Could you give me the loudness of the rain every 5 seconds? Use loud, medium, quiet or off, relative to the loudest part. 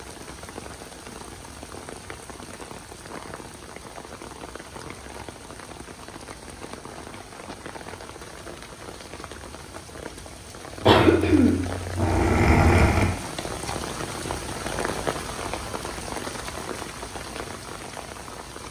medium, medium, loud, loud.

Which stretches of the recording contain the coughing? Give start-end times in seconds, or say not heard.
10.8-13.2.